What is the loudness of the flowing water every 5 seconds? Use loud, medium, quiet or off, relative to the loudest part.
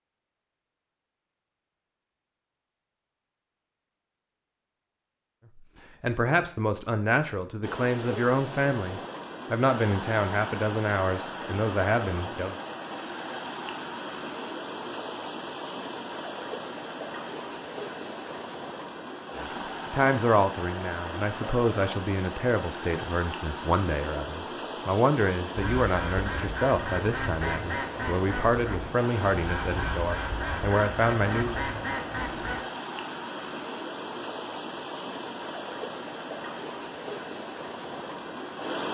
off, loud, loud, loud, loud, loud, loud, loud.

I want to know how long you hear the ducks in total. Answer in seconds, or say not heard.
7 s.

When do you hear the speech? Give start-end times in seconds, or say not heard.
6.0-12.6, 19.4-31.6.